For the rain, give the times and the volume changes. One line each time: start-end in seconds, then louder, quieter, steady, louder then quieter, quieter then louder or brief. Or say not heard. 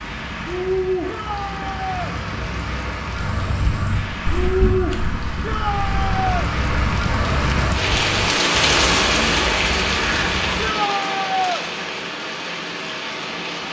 0.0-13.6 louder then quieter.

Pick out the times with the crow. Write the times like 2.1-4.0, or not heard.
3.1-10.8.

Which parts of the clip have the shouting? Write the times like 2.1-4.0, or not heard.
1.1-2.1, 5.4-6.5, 10.6-11.7.